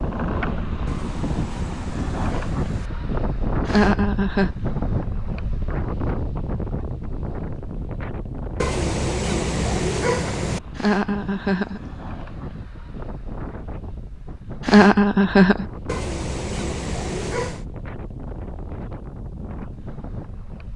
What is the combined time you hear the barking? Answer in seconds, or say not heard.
6 s.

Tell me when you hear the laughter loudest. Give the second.
15 s.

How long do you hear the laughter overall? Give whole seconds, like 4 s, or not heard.
3 s.